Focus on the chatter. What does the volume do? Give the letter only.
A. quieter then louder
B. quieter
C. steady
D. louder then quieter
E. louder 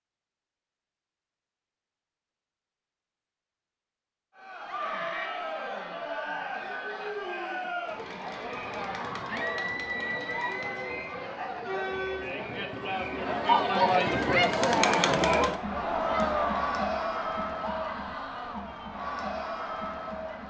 D.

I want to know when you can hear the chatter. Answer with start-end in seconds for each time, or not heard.
4.3-20.4.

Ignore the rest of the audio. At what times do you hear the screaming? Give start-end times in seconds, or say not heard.
4.7-5.3, 9.2-11.2, 17.6-18.6.